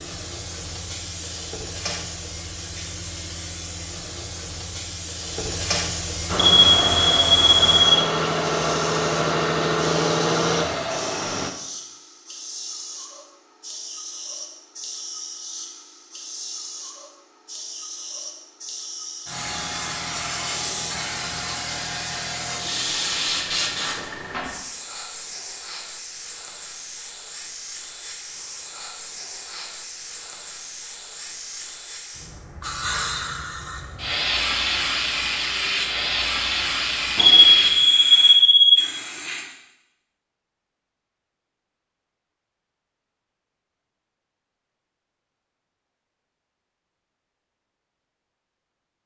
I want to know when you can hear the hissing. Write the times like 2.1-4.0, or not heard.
0.0-39.5.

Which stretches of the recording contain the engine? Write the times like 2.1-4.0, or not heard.
6.2-11.5.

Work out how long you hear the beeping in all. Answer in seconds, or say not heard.
3 s.